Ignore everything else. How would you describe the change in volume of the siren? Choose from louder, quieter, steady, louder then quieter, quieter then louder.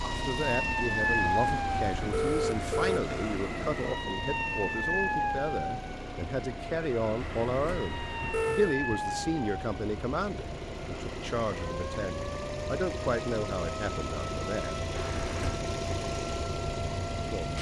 quieter.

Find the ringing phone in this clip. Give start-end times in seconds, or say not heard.
1.0-3.0, 7.2-8.8, 14.9-15.7.